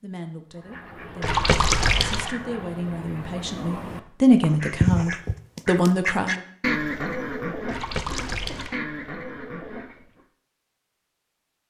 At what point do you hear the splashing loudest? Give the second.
2 s.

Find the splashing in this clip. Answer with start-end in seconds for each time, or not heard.
1.2-2.4, 7.7-8.8.